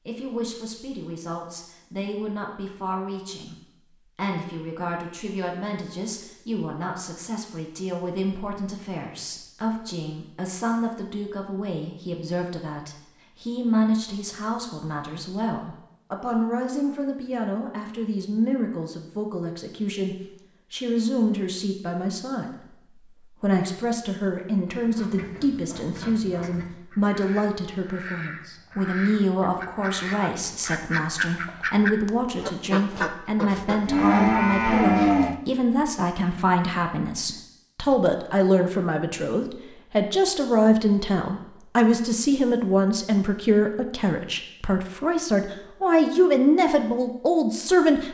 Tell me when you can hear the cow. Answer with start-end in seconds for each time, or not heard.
33.5-35.4.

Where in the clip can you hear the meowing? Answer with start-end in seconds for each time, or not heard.
not heard.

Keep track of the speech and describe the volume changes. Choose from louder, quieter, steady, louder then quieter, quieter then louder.
louder.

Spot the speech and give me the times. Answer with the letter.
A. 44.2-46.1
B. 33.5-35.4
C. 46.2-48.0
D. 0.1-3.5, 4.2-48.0
D.